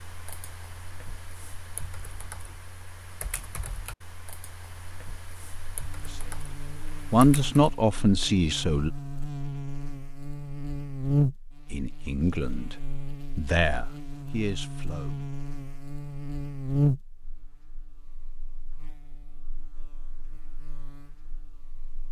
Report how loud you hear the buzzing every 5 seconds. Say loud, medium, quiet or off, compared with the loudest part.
off, medium, loud, loud, quiet.